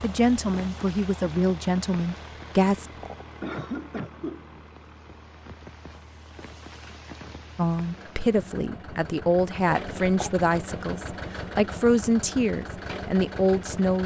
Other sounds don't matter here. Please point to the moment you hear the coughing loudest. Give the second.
4 s.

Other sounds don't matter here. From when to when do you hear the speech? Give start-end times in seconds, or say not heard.
0.0-2.9, 7.5-14.0.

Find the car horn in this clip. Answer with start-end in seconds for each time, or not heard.
not heard.